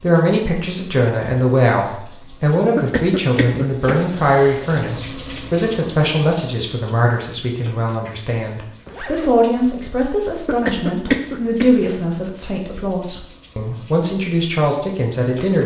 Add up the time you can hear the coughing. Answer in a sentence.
The coughing can be heard for 3 seconds in total.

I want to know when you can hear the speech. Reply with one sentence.
You can hear the speech from 0.0 to 15.6 s.